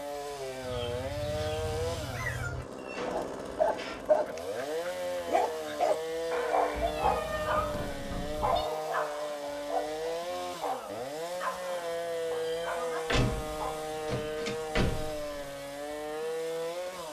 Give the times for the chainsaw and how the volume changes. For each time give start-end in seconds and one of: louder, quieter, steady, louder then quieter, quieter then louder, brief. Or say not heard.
0.0-17.0 steady.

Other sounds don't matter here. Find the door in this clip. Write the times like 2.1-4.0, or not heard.
2.8-4.0, 7.7-8.6, 13.1-15.5.